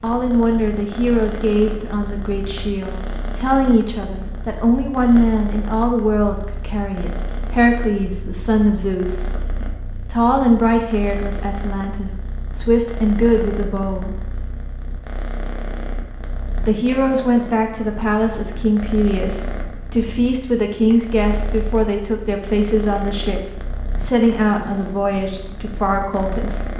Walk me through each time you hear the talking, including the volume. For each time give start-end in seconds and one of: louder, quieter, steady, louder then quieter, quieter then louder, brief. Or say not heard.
0.0-9.2 steady
10.1-14.1 quieter then louder
16.6-26.6 steady.